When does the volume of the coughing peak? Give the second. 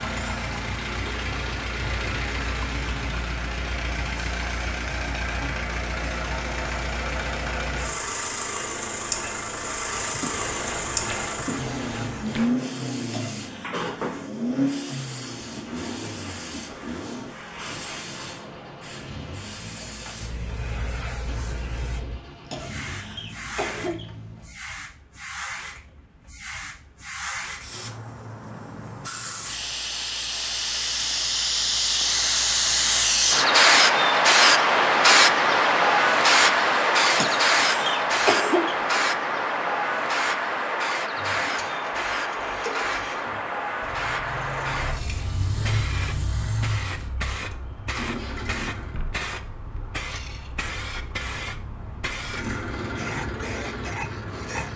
38 s.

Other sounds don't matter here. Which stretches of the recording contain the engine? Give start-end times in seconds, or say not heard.
0.0-24.6, 41.1-49.0, 52.2-54.7.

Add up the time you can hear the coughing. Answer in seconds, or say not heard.
4 s.